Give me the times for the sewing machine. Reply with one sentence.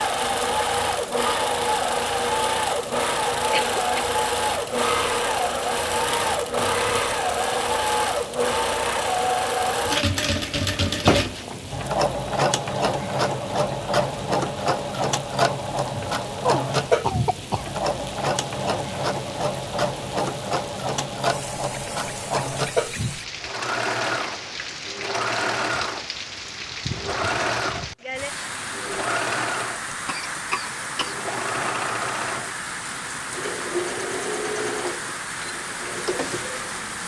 The sewing machine can be heard from 0.0 to 29.9 s and from 30.9 to 37.0 s.